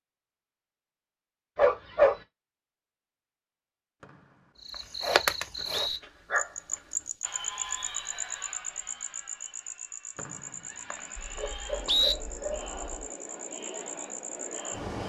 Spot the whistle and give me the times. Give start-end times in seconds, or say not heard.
4.0-6.0, 10.2-12.2.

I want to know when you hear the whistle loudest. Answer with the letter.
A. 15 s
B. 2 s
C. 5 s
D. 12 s
D.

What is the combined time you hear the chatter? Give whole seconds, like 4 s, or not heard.
8 s.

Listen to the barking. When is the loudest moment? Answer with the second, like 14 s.
2 s.